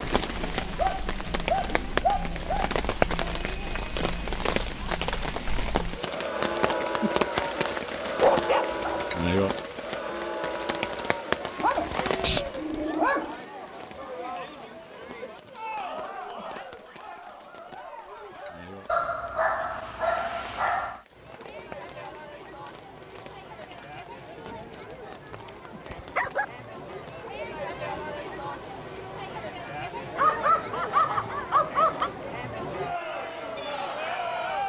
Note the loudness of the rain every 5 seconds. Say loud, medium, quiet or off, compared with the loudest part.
loud, loud, medium, quiet, quiet, quiet, quiet.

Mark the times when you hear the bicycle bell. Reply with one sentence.
The bicycle bell can be heard from 3.3 to 4.2 s.